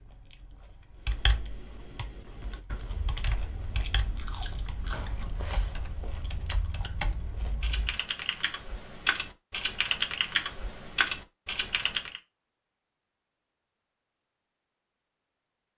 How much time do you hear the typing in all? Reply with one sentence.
The typing can be heard for 11 seconds in total.